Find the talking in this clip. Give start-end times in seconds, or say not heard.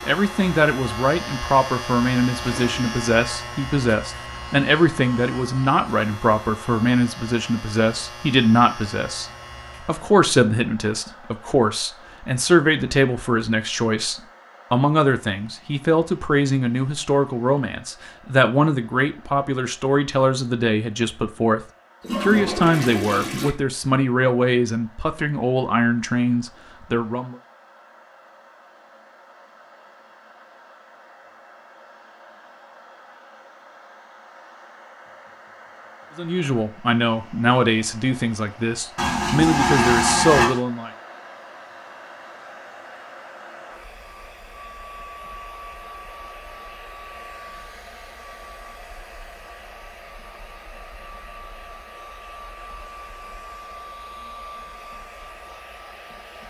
0.1-27.4, 36.1-40.9.